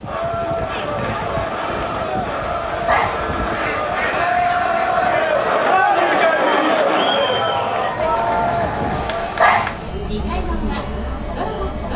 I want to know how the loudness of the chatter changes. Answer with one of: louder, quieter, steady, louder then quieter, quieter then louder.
louder then quieter.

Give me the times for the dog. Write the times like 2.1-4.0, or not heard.
2.4-3.2, 8.9-9.8.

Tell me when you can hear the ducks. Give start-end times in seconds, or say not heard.
3.5-5.8.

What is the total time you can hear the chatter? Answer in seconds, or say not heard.
12 s.